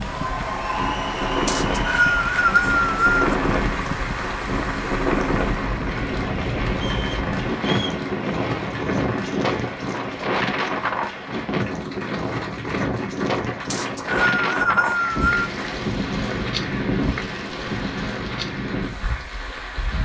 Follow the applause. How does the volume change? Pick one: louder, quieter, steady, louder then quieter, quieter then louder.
quieter.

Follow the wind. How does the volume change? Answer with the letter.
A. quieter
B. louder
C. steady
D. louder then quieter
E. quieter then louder
C.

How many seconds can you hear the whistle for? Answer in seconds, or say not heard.
5 s.